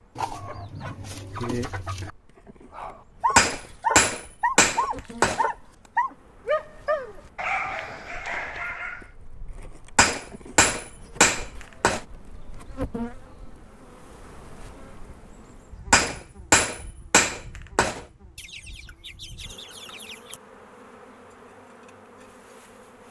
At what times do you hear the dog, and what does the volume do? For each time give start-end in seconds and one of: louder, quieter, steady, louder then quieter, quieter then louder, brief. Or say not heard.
2.7-9.1 quieter.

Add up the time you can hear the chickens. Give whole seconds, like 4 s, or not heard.
4 s.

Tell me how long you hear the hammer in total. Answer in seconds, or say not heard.
6 s.